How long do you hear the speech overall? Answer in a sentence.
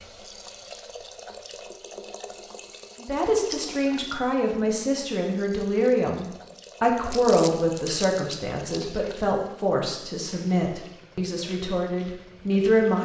You can hear the speech for 10 seconds altogether.